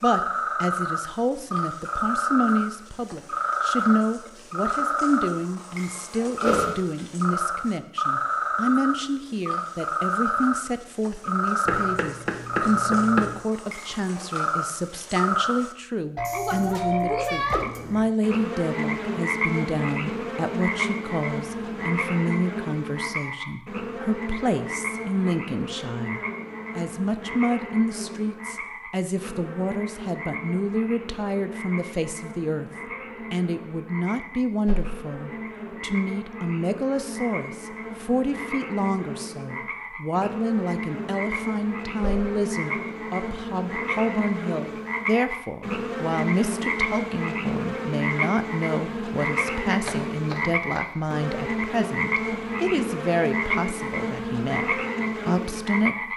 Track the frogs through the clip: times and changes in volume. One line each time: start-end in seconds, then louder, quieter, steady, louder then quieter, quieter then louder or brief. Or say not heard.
0.0-56.1 quieter then louder.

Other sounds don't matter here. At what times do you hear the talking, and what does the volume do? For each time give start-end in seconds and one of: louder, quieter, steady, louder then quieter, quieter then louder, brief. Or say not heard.
0.0-56.1 steady.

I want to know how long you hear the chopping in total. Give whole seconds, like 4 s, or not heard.
3 s.